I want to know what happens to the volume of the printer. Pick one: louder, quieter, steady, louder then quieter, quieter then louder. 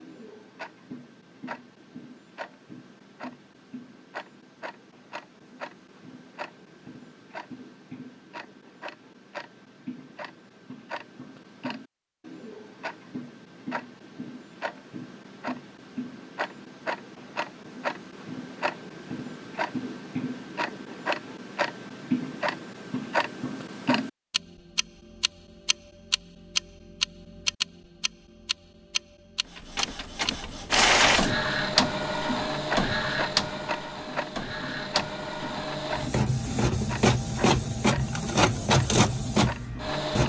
quieter then louder.